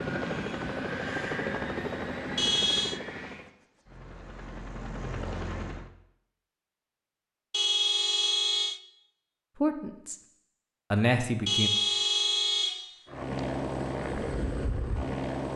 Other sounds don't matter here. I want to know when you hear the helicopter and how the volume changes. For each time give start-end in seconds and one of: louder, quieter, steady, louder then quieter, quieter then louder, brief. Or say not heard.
0.0-5.9 quieter then louder
13.1-15.5 brief.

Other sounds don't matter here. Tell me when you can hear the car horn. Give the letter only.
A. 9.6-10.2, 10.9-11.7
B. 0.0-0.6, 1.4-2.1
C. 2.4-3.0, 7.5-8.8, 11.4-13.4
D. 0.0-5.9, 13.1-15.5
C.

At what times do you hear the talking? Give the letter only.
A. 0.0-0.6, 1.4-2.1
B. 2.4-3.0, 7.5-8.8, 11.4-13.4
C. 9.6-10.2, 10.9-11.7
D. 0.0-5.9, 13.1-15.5
C.